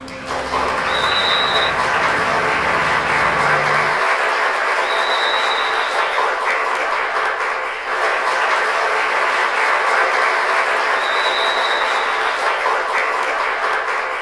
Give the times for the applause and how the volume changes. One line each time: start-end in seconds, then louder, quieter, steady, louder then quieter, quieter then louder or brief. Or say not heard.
0.0-14.1 steady.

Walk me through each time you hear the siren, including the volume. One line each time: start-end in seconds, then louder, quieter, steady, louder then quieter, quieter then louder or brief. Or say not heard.
not heard.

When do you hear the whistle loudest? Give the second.
1 s.